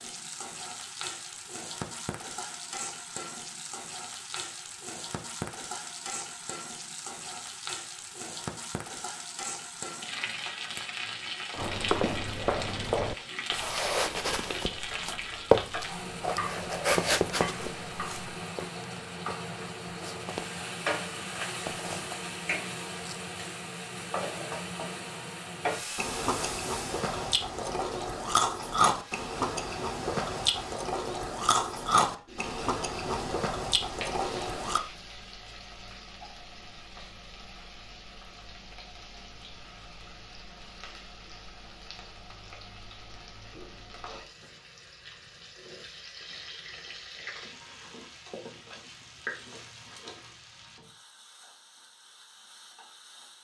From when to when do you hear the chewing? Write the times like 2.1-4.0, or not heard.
25.9-34.8.